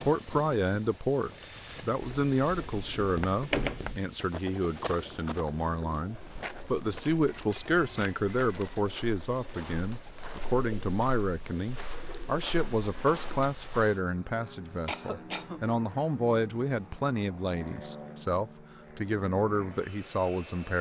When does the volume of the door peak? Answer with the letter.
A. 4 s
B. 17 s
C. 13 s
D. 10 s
A.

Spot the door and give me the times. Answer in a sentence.
The door can be heard from 2.0 to 4.0 s.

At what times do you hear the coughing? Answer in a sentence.
The coughing can be heard from 14.8 to 15.7 s.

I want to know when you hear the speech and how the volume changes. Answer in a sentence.
You can hear the speech from 0.0 to 20.7 s, at a steady volume.